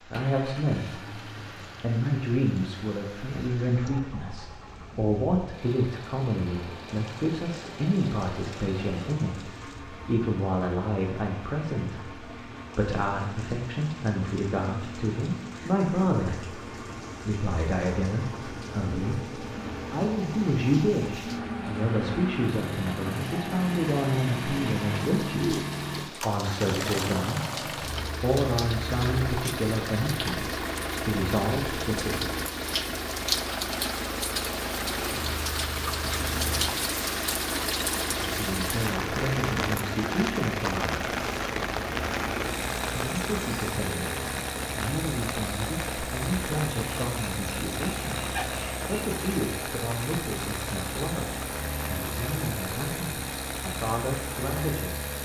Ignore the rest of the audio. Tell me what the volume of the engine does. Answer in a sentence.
The volume of the engine goes up.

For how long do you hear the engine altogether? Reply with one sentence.
You can hear the engine for 55 seconds altogether.